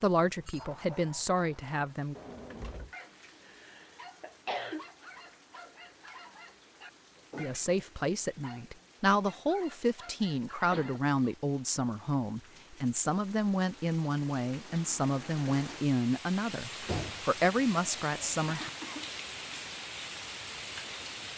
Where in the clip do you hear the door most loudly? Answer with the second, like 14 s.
17 s.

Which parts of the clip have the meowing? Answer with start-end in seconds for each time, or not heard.
not heard.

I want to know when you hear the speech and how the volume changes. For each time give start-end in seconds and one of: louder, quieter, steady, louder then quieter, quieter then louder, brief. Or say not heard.
0.0-2.1 brief
7.3-18.7 steady.